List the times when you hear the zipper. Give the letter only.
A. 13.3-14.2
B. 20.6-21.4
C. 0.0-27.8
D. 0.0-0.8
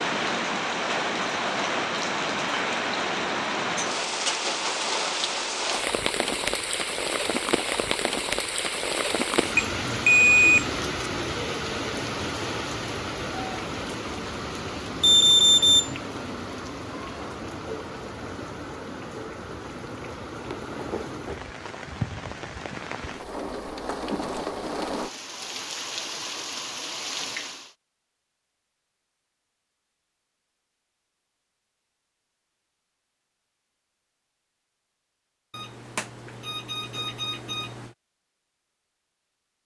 B.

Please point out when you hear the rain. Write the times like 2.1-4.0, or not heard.
0.0-27.8.